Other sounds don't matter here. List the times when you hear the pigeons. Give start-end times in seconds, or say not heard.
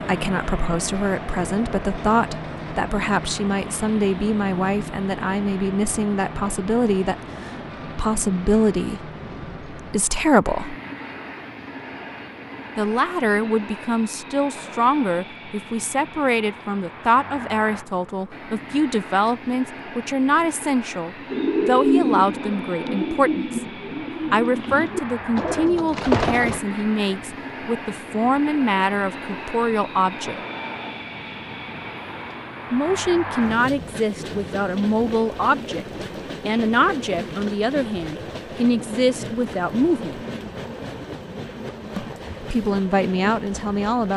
21.3-26.6.